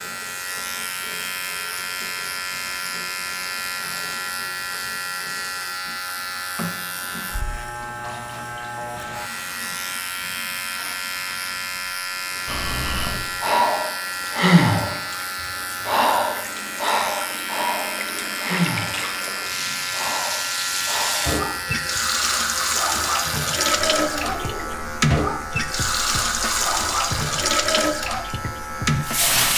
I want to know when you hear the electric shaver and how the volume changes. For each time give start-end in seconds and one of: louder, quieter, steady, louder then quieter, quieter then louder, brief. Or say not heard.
0.0-29.5 steady.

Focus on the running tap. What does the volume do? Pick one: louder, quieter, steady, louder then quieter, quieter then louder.
louder.